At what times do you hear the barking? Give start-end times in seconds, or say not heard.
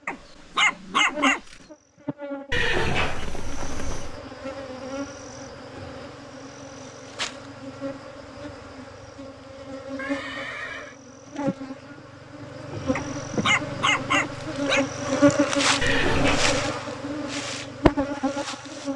0.1-1.6, 12.9-14.8.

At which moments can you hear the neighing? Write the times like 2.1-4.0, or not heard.
2.5-4.2, 9.9-10.9, 15.8-16.6.